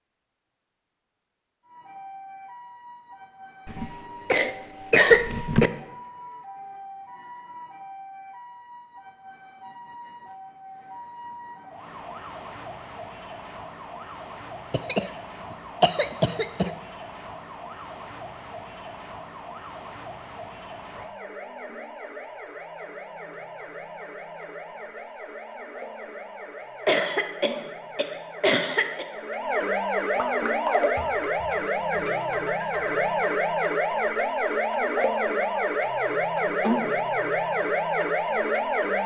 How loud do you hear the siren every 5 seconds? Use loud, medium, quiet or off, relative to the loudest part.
quiet, quiet, quiet, quiet, quiet, medium, loud, loud.